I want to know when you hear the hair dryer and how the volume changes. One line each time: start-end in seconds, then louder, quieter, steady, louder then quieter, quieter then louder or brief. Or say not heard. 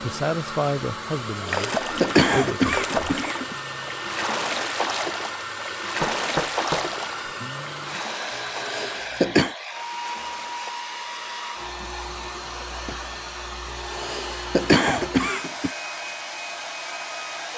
0.0-17.5 steady.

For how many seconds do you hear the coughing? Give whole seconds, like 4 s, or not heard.
5 s.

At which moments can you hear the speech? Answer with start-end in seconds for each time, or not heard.
0.0-2.6.